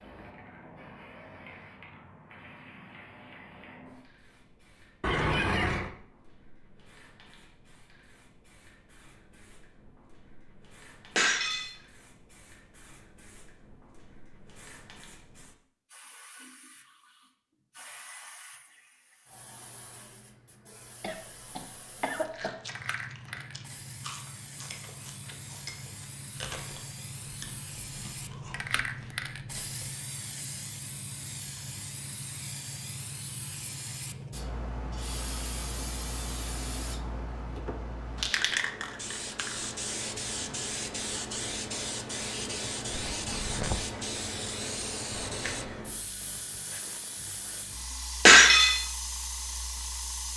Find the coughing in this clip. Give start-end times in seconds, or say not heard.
5.0-5.9, 21.0-22.5, 42.9-43.9.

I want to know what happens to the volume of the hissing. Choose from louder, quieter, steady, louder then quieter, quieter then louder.
louder.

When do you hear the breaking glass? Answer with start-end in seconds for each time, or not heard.
11.2-11.7, 24.7-25.9, 48.2-48.8.